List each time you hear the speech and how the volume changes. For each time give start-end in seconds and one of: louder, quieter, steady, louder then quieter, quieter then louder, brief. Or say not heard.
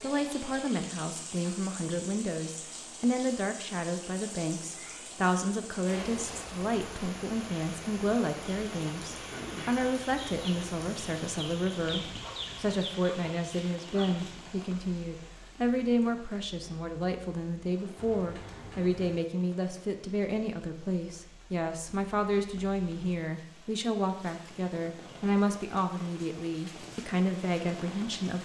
0.0-28.3 steady.